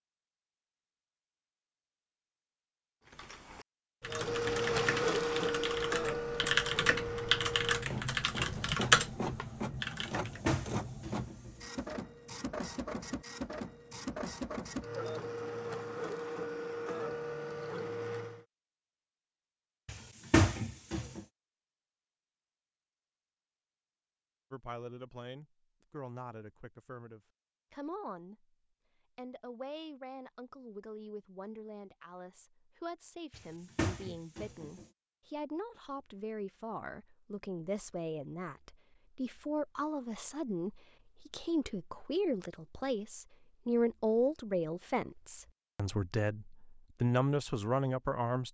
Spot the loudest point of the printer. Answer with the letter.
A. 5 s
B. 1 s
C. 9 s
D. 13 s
A.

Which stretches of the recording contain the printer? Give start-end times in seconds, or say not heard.
4.0-18.4.